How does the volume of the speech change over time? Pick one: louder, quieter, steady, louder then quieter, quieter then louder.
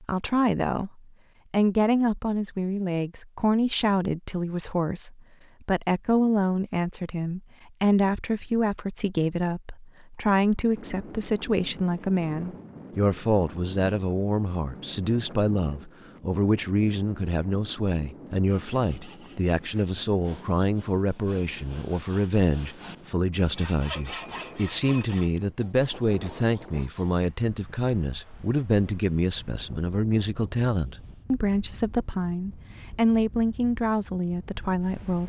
steady.